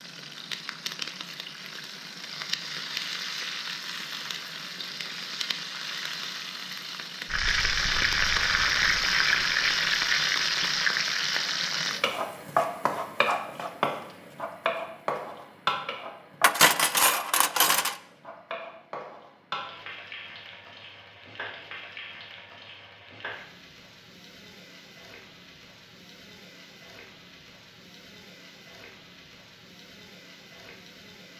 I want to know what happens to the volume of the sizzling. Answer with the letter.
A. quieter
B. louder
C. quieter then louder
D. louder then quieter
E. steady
D.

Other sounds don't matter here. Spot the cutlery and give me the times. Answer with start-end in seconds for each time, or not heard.
16.4-17.9.